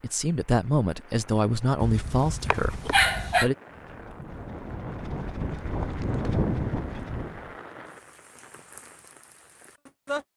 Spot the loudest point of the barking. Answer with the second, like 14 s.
3 s.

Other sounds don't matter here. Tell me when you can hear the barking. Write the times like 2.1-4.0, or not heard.
1.8-3.5.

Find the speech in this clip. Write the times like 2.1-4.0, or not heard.
0.0-3.5.